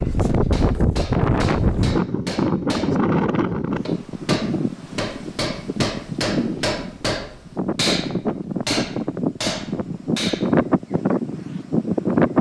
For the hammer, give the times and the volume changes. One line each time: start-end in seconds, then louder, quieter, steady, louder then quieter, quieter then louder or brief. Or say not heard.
0.4-10.6 louder.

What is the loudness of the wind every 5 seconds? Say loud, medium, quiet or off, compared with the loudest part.
loud, medium, loud.